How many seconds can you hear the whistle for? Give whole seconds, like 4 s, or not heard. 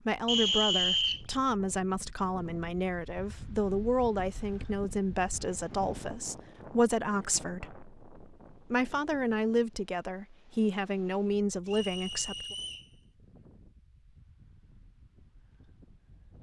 2 s.